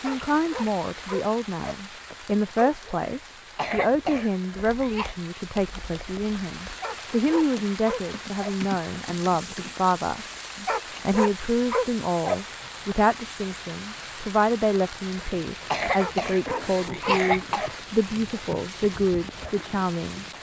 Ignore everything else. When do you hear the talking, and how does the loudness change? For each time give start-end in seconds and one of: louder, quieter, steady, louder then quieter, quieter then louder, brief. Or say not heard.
0.0-20.2 steady.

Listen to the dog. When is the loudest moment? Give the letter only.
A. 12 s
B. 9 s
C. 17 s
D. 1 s
A.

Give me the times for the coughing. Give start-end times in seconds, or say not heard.
3.0-5.2, 15.2-17.7.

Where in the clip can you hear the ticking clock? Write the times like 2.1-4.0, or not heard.
not heard.